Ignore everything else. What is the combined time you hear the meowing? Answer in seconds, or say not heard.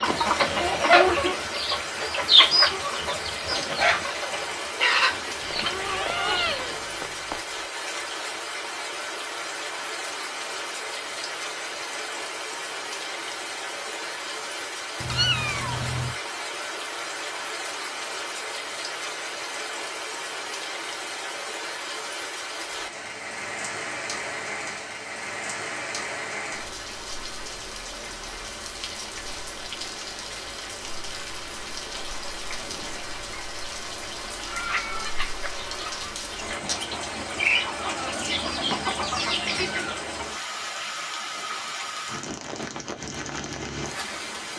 4 s.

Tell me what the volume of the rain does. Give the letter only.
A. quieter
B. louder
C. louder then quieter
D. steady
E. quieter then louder
D.